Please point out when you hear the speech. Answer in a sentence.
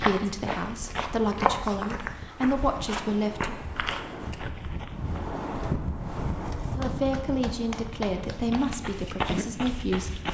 You can hear the speech from 0.0 to 3.6 s and from 6.8 to 10.2 s.